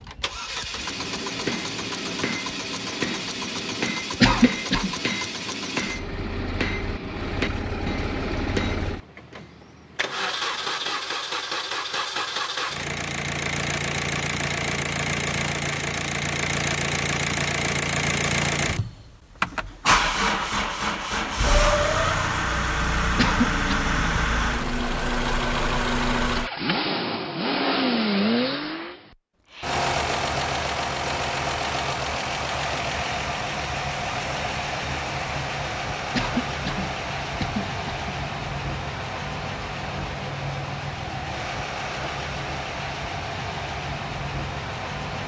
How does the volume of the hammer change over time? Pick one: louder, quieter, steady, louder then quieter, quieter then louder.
quieter.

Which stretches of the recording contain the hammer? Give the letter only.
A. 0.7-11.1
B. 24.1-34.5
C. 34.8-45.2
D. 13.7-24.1
A.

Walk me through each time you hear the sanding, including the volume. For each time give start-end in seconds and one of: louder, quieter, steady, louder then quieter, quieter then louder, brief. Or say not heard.
not heard.